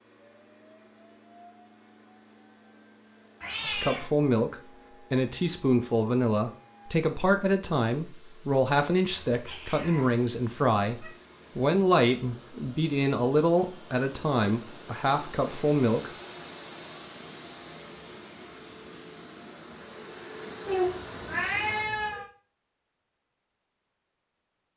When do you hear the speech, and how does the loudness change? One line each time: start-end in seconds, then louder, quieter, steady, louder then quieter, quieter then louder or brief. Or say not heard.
3.6-16.1 steady.